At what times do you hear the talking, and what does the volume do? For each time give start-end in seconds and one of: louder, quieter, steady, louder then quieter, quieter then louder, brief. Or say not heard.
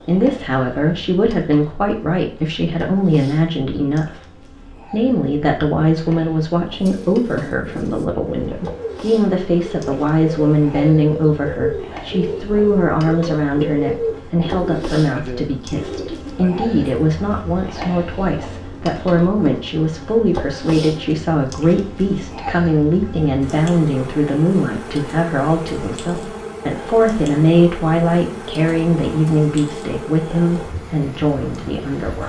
0.1-32.2 steady.